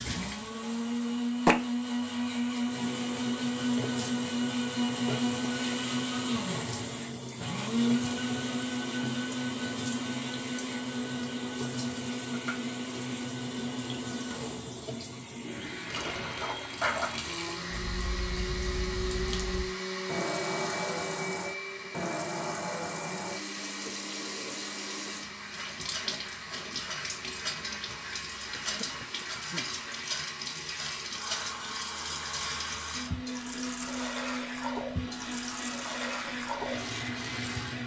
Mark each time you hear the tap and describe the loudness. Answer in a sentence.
The tap can be heard from 0.0 to 37.8 s, at a steady volume.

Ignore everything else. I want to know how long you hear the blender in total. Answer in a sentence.
The blender can be heard for 38 seconds in total.